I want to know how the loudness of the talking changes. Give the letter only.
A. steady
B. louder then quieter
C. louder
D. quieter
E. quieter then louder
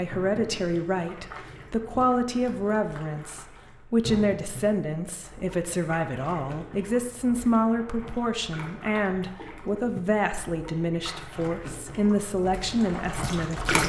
A.